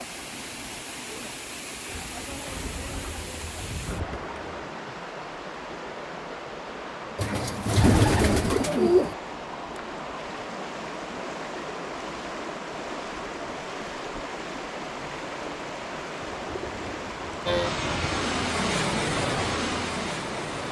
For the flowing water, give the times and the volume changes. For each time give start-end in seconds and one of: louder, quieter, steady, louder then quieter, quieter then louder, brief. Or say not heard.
0.0-20.6 steady.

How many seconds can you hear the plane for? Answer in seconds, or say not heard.
3 s.